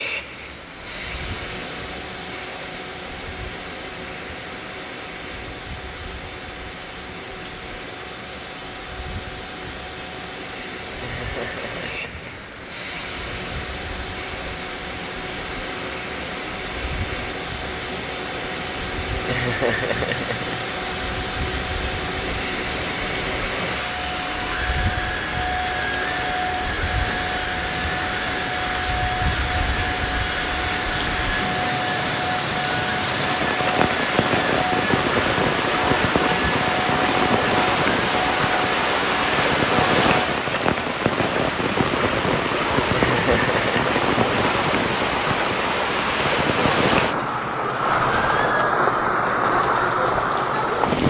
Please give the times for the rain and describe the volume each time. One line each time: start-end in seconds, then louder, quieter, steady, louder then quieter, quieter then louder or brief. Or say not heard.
0.0-51.0 louder.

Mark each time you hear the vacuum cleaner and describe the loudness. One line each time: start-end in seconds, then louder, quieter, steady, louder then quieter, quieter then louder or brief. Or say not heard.
0.0-40.5 louder.